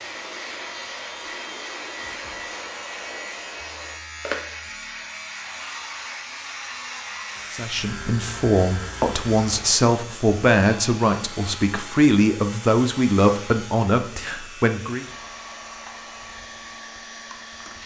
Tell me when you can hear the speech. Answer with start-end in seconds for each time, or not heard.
7.5-15.1.